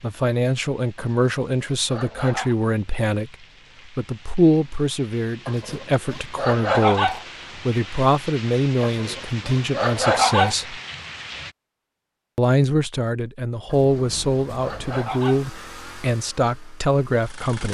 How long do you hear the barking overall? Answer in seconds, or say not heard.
7 s.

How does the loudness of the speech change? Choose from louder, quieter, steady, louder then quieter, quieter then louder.
steady.